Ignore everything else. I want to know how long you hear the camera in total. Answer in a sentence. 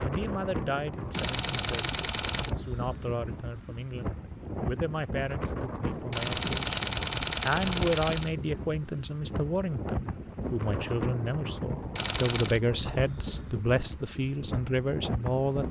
You can hear the camera for 4 seconds altogether.